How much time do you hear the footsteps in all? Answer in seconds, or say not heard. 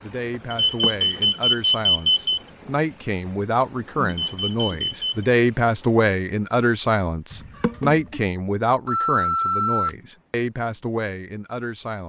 not heard.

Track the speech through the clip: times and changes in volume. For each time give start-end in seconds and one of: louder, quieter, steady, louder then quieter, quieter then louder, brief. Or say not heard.
0.0-12.0 louder then quieter.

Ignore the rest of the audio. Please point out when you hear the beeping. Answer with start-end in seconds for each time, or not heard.
0.5-2.4, 4.0-5.2, 8.8-9.9.